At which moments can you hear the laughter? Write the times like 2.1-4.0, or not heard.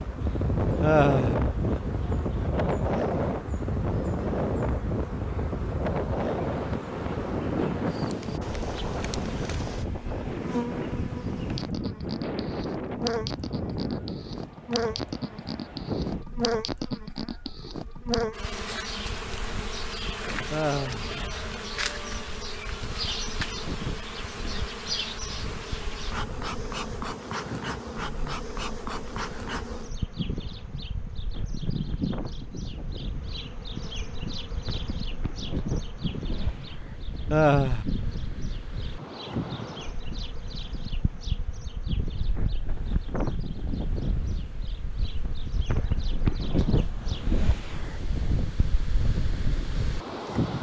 0.8-1.4, 20.5-21.1, 37.3-37.9.